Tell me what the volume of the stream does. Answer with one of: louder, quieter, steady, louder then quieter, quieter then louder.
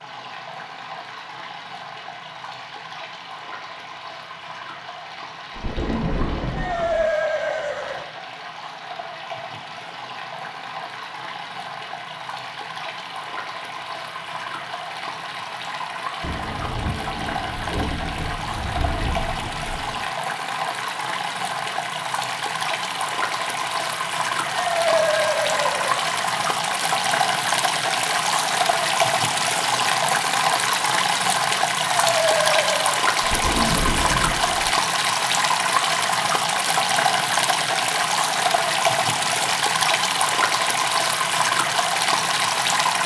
louder.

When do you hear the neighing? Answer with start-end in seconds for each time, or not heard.
6.5-8.1, 24.5-26.0, 31.8-33.0.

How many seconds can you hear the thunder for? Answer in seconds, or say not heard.
7 s.